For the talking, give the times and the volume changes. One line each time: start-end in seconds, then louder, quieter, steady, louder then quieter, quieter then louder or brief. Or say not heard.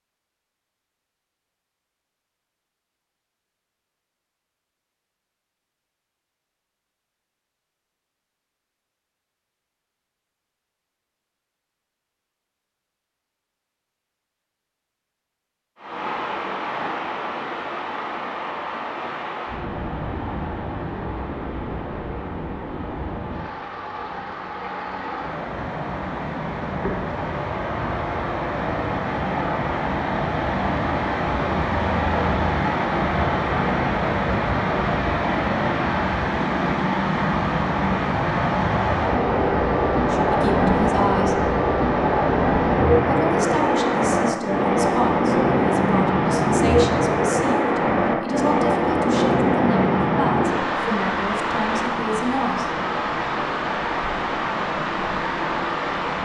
40.1-41.4 brief
43.0-52.8 steady.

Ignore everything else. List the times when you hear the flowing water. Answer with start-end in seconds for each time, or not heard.
15.8-56.2.